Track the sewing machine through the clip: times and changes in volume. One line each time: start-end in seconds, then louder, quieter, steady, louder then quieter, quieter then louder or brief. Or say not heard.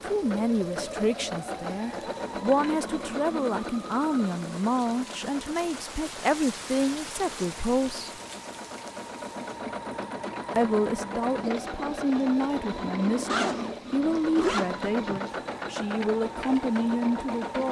0.0-17.6 quieter then louder.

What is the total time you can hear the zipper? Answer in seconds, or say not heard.
2 s.